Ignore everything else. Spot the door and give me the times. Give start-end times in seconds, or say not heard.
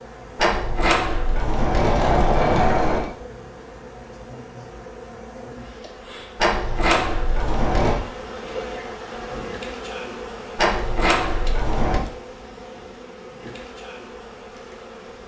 0.3-3.1, 6.3-8.0, 10.6-12.0.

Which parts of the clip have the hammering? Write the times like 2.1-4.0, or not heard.
not heard.